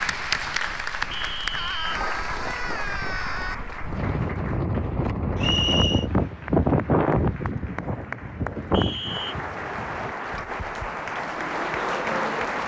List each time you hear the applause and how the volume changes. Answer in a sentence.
You can hear the applause from 0.0 to 12.6 s, getting quieter then louder.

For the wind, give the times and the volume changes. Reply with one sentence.
The wind can be heard from 0.0 to 10.2 s, getting louder then quieter.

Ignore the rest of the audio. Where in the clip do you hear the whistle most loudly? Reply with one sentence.
The volume of the whistle peaks at 6 seconds.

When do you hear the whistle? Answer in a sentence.
The whistle can be heard from 1.1 to 1.8 s, from 5.3 to 6.0 s and from 8.7 to 9.3 s.